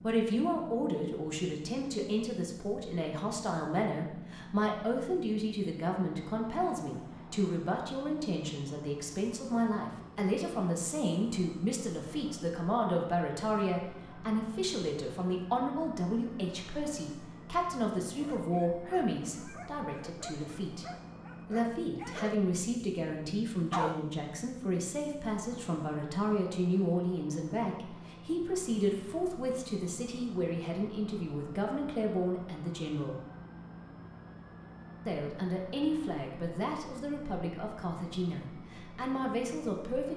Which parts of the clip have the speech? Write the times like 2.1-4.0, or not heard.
0.0-20.9, 21.4-33.2, 35.0-40.1.